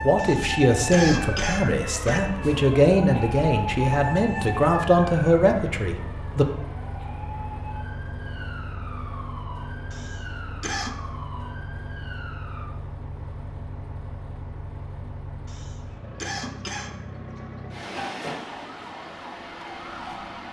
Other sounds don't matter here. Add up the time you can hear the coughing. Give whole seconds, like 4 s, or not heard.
5 s.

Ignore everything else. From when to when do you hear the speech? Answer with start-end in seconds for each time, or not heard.
0.0-6.5.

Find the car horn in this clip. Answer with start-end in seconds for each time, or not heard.
not heard.